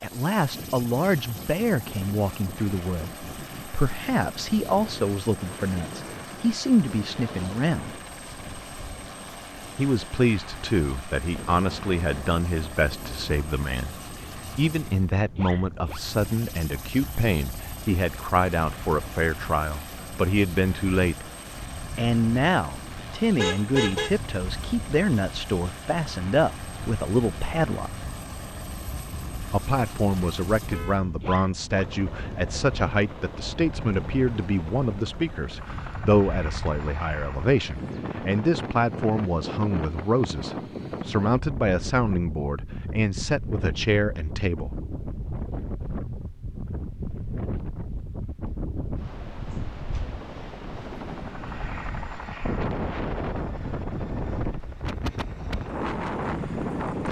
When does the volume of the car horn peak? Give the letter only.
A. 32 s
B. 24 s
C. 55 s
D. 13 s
B.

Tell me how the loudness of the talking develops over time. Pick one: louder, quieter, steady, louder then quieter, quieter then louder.
steady.